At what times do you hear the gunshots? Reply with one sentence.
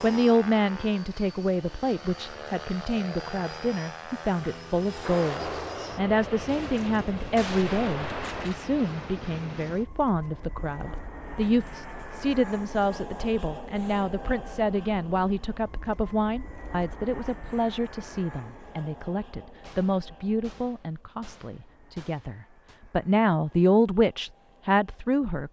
The gunshots can be heard from 5.0 to 8.6 s and from 19.6 to 22.8 s.